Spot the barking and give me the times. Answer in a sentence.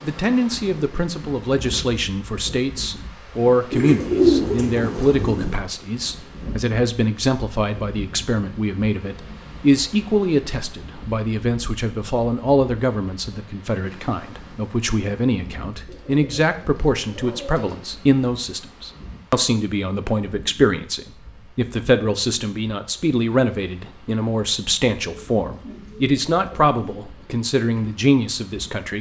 The barking can't be heard in this clip.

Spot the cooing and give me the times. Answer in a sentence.
The cooing can be heard from 3.7 to 5.5 s, from 15.8 to 17.8 s and from 25.0 to 27.0 s.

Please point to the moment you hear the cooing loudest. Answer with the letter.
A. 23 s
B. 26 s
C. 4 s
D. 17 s
C.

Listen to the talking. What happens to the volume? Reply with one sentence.
The volume of the talking stays about the same.